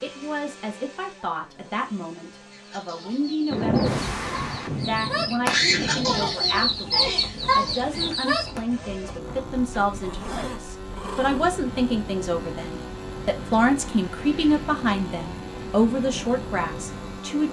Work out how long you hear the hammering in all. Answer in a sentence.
The hammering can't be heard in this clip.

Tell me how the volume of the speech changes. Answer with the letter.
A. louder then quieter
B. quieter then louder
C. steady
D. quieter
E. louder
E.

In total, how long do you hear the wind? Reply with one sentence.
The wind can be heard for 14 seconds in total.